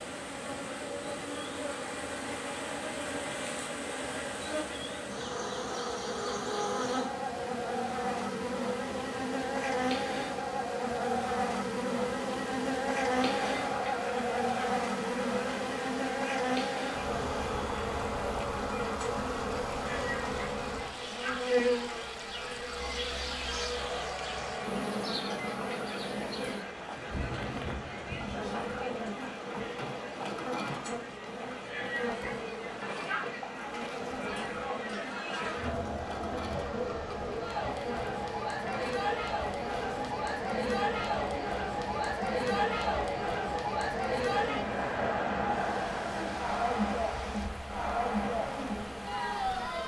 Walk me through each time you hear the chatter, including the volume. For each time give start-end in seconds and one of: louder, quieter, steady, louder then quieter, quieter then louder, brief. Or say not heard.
13.2-49.8 louder.